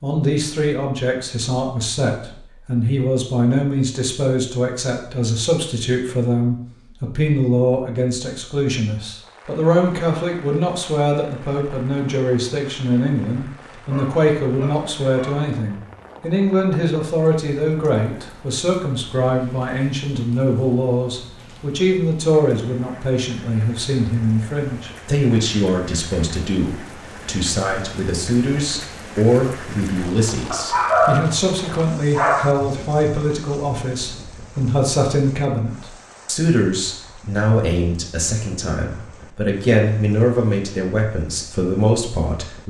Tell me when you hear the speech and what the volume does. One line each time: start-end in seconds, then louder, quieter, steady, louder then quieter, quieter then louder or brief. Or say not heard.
0.0-42.6 steady.